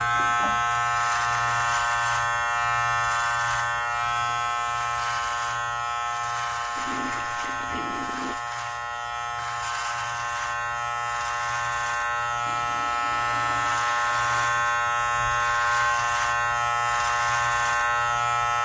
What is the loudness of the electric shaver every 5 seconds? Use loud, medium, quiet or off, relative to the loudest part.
loud, medium, loud, loud.